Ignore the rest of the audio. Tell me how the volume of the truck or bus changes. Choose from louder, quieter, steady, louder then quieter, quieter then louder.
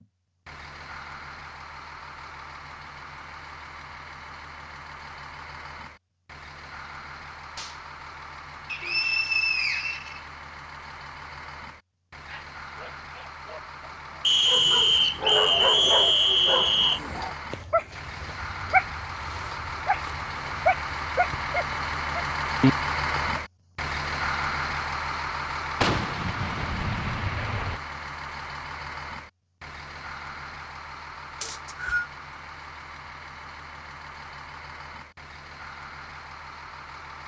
louder then quieter.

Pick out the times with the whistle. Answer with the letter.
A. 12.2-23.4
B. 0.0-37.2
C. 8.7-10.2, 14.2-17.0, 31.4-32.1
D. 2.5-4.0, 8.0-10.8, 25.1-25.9
C.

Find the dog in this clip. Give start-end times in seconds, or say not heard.
12.2-23.4.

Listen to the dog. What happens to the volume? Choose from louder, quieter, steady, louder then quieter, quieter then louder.
louder.